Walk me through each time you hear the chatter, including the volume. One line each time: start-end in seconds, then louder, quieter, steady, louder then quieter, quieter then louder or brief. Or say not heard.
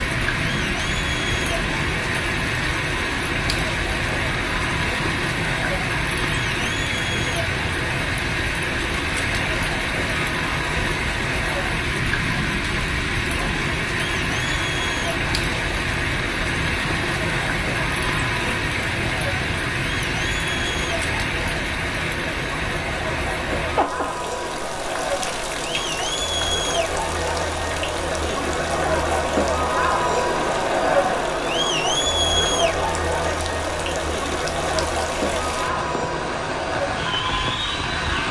0.0-38.2 louder.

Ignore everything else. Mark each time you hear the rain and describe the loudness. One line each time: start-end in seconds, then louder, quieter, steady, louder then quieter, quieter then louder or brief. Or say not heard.
0.0-38.2 quieter.